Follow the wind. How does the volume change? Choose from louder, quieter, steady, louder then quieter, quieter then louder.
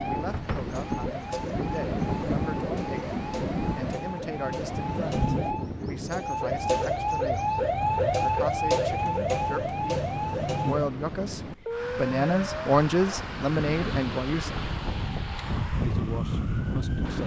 quieter then louder.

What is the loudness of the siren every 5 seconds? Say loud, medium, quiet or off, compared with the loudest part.
medium, loud, medium, medium.